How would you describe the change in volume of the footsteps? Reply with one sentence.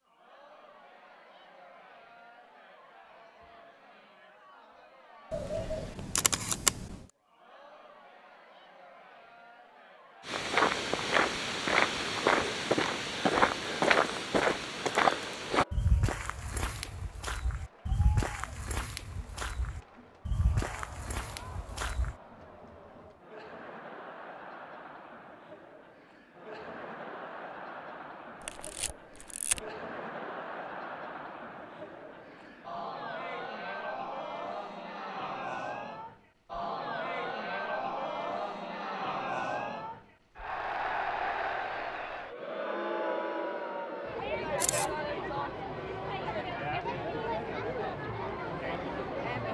The loudness of the footsteps goes down.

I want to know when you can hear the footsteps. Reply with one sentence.
The footsteps can be heard from 10.2 to 22.1 s.